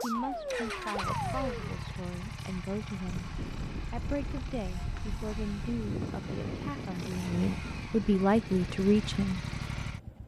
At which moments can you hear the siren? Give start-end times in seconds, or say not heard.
0.0-1.9.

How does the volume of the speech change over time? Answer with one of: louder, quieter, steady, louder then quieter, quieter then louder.
louder.